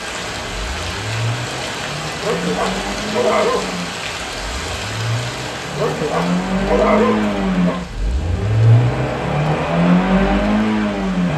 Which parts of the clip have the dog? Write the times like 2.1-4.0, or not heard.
2.2-3.9, 5.8-7.8.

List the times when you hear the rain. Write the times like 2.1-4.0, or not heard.
0.0-11.3.